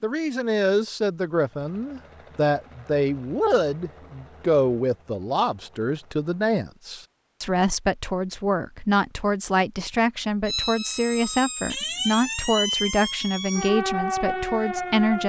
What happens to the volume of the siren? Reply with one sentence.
The volume of the siren stays about the same.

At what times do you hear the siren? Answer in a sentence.
You can hear the siren from 10.4 to 15.2 s.